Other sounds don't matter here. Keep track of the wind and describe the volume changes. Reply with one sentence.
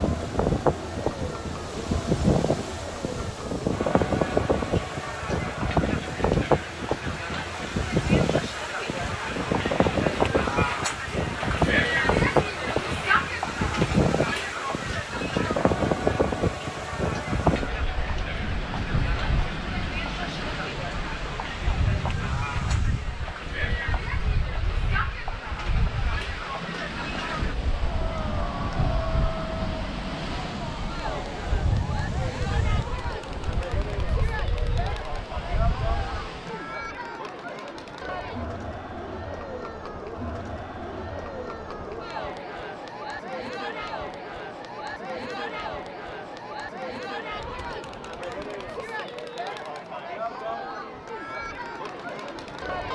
The volume of the wind goes down.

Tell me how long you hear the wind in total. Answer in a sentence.
You can hear the wind for 37 seconds altogether.